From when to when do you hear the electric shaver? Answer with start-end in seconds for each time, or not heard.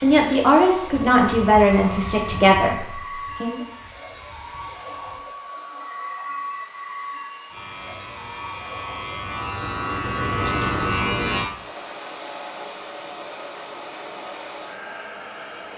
0.0-5.2, 7.5-11.5.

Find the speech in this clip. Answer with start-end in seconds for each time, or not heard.
0.0-3.6.